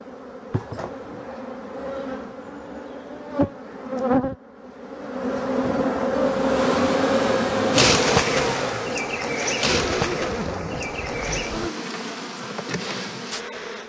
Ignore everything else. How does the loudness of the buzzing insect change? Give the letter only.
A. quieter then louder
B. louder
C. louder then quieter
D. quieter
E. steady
C.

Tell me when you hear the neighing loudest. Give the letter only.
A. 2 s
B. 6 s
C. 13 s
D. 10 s
D.